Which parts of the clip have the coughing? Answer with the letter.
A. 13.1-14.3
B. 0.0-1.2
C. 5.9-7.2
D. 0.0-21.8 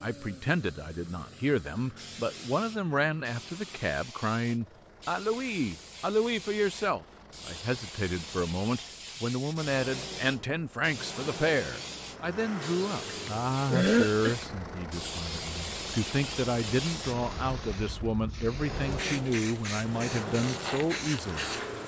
A.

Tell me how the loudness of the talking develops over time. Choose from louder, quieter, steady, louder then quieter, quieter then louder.
steady.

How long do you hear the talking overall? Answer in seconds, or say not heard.
22 s.